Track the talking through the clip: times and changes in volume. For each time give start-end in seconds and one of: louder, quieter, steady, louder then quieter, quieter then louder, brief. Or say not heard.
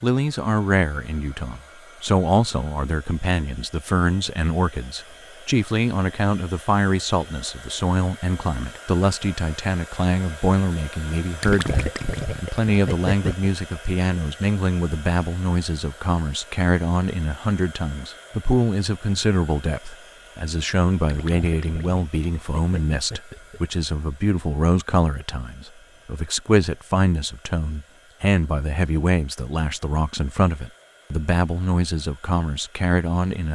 0.0-33.5 steady.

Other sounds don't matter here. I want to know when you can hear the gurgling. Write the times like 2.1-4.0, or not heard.
11.4-13.5, 21.1-23.6.